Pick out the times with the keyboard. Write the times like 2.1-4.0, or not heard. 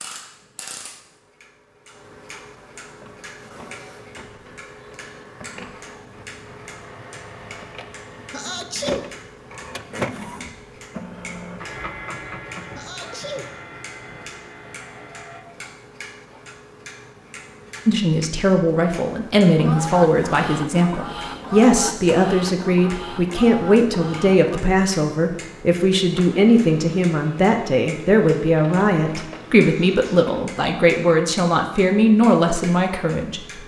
not heard.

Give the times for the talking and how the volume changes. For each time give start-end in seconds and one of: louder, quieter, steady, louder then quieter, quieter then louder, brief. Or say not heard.
17.9-33.6 steady.